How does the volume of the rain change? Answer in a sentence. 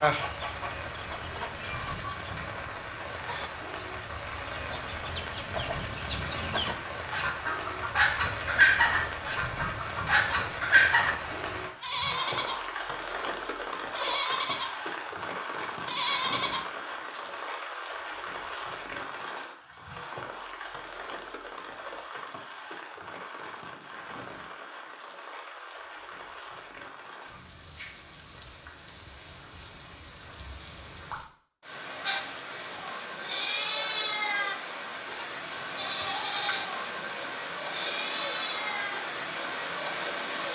The loudness of the rain goes down, then up.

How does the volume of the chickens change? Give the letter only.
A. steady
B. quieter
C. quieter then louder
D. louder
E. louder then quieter
C.